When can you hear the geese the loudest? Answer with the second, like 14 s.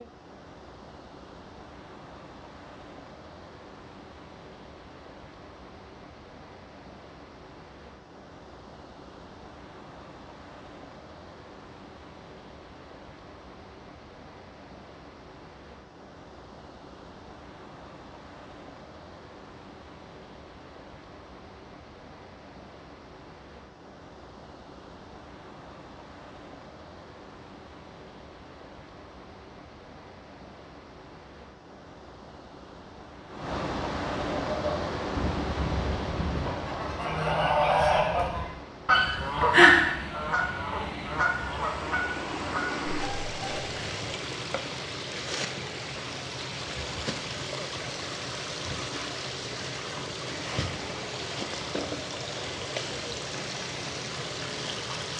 40 s.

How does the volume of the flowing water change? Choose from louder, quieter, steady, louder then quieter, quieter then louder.
louder.